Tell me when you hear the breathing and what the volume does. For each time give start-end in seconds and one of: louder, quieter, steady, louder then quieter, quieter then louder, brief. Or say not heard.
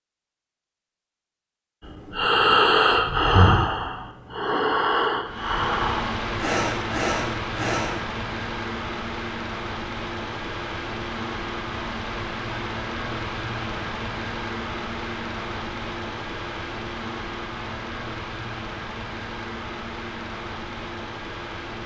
1.9-8.0 quieter.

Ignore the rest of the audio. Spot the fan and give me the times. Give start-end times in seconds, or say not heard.
5.2-21.8.